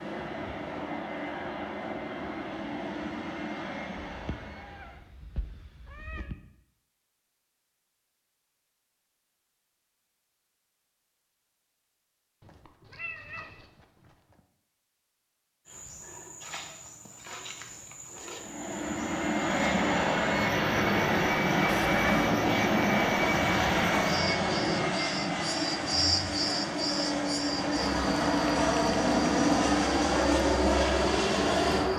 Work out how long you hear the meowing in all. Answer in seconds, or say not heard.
5 s.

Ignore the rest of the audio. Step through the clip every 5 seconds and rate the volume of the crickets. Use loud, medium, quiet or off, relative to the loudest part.
off, off, off, medium, loud, loud, loud.